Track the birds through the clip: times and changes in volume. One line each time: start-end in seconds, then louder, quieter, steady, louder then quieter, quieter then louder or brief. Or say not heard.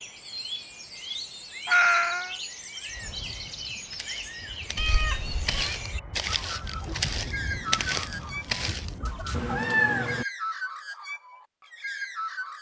0.0-12.5 steady.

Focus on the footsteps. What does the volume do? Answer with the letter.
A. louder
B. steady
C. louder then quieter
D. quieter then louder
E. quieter
A.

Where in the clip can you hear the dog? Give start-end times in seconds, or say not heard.
not heard.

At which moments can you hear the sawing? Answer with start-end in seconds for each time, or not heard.
not heard.